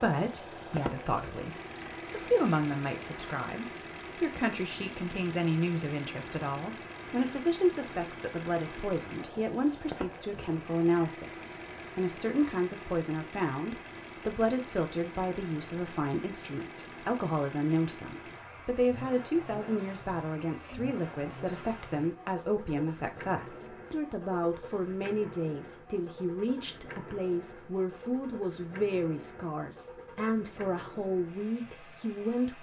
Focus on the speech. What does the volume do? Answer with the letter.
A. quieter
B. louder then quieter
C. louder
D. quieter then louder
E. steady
E.